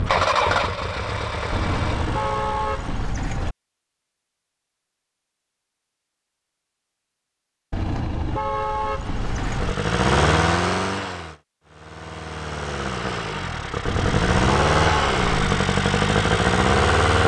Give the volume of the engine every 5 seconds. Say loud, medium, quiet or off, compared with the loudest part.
medium, medium, loud, loud.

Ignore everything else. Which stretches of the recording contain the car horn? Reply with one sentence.
The car horn can be heard from 1.5 to 3.5 s, from 7.7 to 9.8 s and from 13.8 to 15.6 s.